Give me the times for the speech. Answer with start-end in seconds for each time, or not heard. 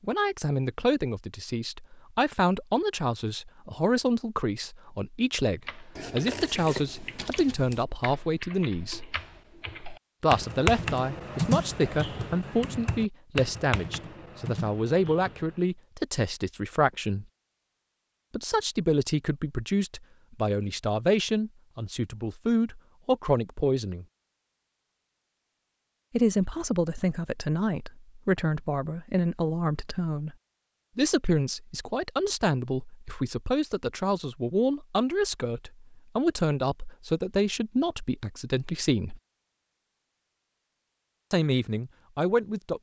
0.0-9.1, 10.2-17.2, 18.3-24.1, 26.1-30.4, 30.9-39.2, 41.3-42.7.